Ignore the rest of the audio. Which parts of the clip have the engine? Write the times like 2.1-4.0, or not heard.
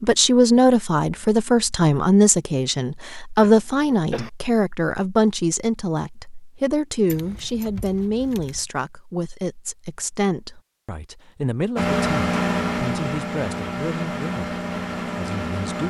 11.8-15.8.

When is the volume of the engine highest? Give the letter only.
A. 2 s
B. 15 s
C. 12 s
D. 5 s
C.